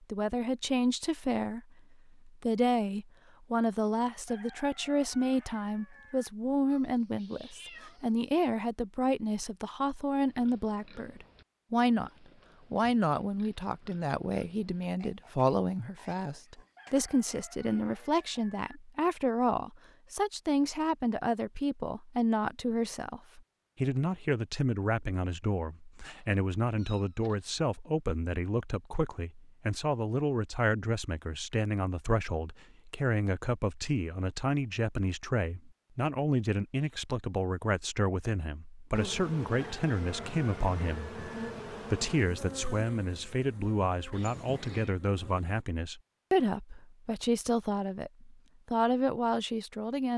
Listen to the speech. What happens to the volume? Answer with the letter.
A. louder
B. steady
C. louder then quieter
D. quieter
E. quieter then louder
B.